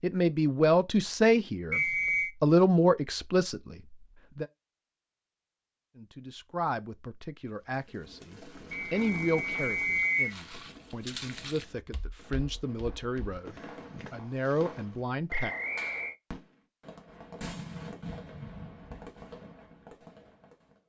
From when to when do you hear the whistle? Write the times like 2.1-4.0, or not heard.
1.7-2.4, 8.7-10.3, 15.3-16.1.